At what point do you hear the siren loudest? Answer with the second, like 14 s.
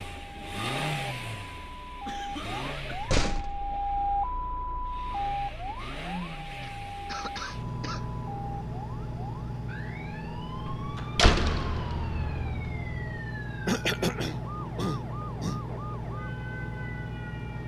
4 s.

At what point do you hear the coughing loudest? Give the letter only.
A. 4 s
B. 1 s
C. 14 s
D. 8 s
C.